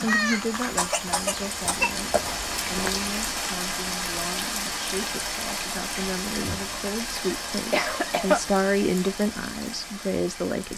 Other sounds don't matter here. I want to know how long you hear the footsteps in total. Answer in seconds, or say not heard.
3 s.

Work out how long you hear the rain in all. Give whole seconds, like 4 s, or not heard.
11 s.